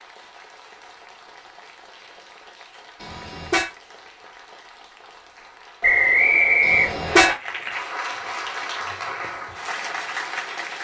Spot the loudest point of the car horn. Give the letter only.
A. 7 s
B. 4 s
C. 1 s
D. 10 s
A.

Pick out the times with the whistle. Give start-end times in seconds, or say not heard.
5.8-7.3.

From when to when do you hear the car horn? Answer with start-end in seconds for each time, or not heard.
3.0-3.7, 6.6-7.3.